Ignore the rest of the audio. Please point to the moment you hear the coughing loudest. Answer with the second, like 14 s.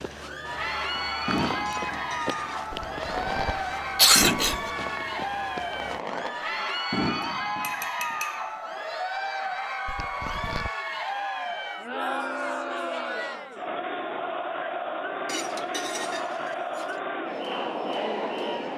4 s.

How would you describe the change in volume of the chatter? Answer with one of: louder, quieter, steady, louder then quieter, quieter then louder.
steady.